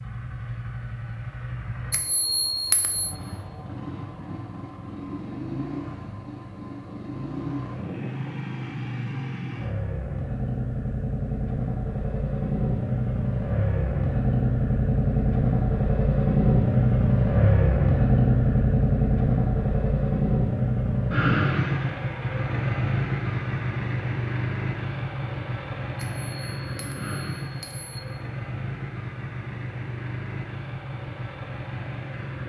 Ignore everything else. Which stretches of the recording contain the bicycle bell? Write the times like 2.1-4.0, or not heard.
1.9-3.1, 25.9-28.0.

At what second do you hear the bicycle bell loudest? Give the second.
2 s.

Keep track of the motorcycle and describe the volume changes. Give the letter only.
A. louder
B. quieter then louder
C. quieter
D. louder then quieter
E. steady
D.